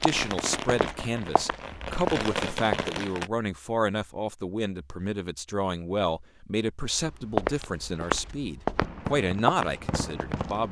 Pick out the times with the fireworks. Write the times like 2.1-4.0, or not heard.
0.0-3.3, 8.8-10.6.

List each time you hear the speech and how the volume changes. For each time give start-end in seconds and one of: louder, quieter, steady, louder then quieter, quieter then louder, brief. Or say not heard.
0.0-10.6 steady.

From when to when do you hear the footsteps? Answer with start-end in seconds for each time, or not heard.
0.0-2.9, 6.9-10.6.